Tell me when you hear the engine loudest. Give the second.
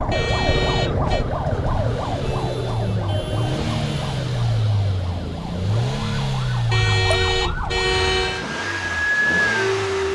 6 s.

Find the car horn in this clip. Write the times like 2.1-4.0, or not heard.
0.1-1.2, 6.7-8.4.